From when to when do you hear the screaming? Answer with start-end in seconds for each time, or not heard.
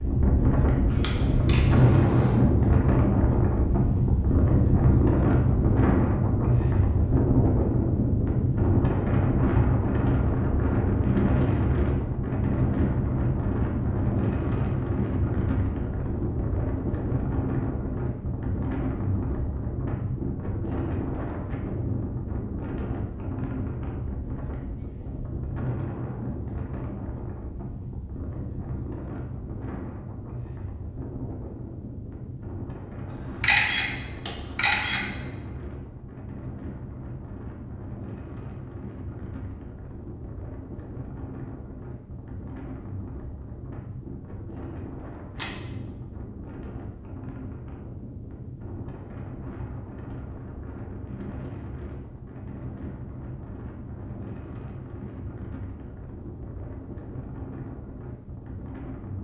not heard.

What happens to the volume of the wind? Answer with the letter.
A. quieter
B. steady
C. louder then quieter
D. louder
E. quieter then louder
A.